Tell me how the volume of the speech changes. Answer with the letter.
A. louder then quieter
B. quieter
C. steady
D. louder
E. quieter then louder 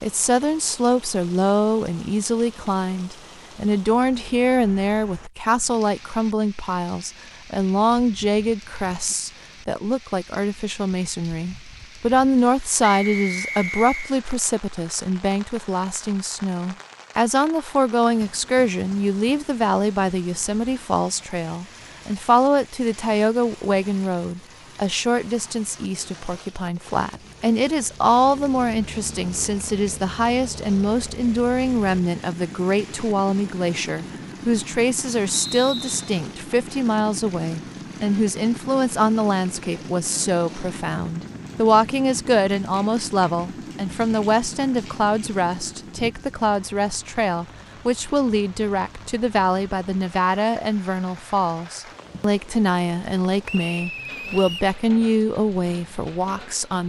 C.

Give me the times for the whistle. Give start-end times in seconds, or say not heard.
12.8-14.2, 35.3-36.0, 53.5-54.8.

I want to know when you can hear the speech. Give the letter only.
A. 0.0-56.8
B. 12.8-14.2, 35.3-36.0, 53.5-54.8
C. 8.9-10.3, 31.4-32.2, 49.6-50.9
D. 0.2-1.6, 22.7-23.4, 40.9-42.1
A.